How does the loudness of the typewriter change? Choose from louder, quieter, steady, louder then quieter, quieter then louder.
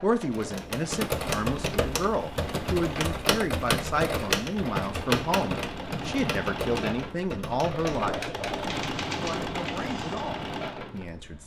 quieter.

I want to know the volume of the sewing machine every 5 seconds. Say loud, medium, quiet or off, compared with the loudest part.
medium, loud, loud.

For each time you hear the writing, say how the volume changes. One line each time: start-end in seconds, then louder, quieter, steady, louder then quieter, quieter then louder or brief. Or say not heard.
not heard.